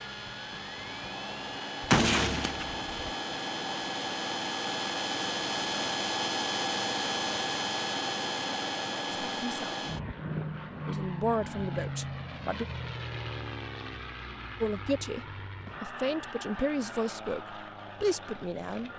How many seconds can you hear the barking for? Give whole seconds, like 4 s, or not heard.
not heard.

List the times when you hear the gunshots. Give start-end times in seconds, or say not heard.
1.8-3.0.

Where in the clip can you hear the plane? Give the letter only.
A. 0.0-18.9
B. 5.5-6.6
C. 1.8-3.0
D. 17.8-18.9
A.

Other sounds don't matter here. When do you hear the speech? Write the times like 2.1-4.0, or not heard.
9.3-9.8, 10.8-12.7, 14.6-18.9.